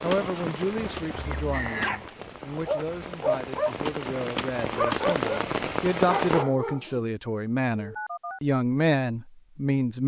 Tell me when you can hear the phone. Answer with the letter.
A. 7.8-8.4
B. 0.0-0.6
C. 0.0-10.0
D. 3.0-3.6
A.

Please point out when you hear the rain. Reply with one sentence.
You can hear the rain from 0.0 to 6.5 s.